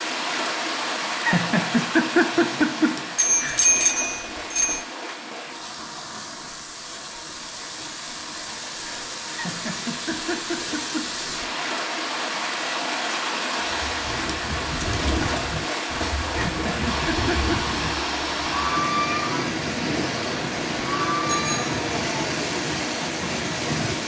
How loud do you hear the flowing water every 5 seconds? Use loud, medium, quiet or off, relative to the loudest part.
loud, medium, loud, loud, loud.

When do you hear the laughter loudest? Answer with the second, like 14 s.
2 s.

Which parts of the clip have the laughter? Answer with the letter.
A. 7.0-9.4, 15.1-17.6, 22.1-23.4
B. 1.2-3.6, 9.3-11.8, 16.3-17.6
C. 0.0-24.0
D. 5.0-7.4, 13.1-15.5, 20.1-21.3
B.